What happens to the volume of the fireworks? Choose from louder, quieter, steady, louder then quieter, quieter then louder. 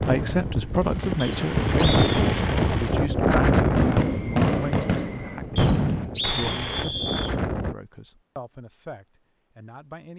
louder.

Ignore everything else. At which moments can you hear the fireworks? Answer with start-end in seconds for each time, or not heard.
0.0-6.8.